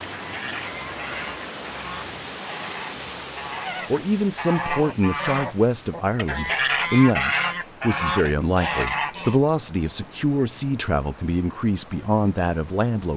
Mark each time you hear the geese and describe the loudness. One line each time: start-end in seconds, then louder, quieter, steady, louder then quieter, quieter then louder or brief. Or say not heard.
0.1-9.4 louder.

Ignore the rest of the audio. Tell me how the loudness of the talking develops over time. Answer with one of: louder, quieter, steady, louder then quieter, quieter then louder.
steady.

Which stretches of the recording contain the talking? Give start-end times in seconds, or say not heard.
3.9-13.1.